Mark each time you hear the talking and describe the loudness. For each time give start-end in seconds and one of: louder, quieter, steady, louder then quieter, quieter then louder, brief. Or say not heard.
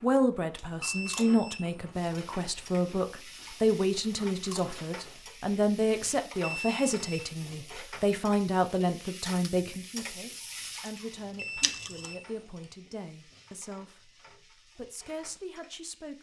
0.0-16.1 quieter.